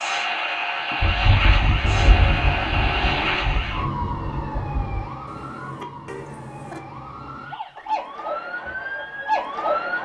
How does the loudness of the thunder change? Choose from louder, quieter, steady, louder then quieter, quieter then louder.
quieter.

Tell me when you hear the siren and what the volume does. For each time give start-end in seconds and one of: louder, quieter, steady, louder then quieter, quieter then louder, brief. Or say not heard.
0.0-10.0 quieter then louder.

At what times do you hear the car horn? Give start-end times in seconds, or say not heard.
1.8-3.5, 5.2-6.8.